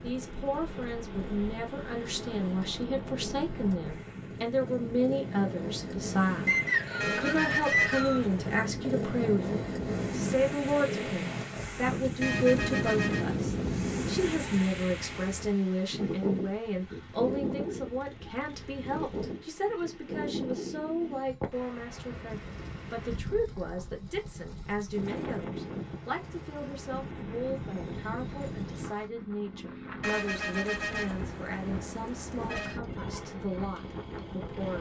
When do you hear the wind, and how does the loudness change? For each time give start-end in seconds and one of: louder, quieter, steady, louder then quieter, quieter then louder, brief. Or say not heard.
0.0-34.7 louder then quieter.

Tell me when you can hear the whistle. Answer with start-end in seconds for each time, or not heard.
6.5-8.2.